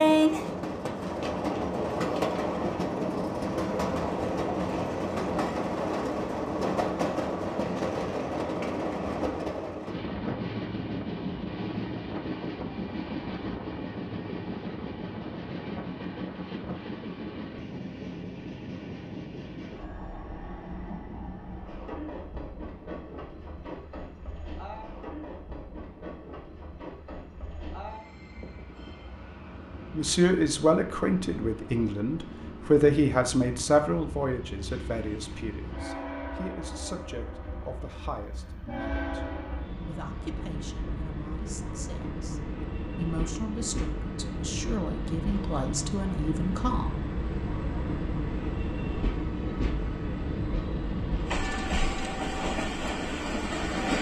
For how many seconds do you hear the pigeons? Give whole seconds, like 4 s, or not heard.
not heard.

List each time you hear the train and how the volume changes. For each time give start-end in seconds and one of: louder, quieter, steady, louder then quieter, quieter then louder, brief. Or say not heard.
0.0-53.9 quieter then louder.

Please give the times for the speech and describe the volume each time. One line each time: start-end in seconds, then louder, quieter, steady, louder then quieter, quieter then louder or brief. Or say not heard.
29.9-46.9 quieter then louder.